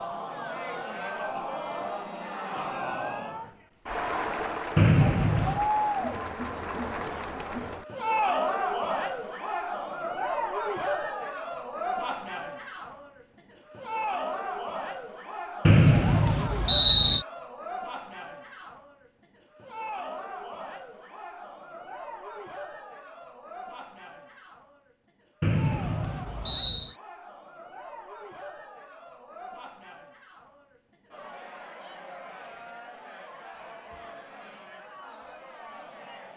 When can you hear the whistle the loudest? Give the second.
17 s.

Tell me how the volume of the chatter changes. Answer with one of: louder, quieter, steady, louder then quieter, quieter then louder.
quieter.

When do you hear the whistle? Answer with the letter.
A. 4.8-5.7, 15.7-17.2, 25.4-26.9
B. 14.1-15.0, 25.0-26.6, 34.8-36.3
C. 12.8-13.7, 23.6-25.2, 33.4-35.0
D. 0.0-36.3
A.